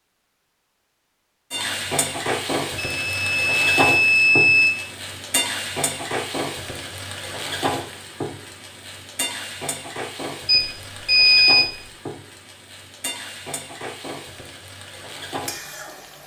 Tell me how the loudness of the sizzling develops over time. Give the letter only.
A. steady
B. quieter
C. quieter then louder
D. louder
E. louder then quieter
B.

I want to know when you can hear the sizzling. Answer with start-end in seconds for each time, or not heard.
1.5-16.2.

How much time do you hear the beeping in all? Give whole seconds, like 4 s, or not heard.
3 s.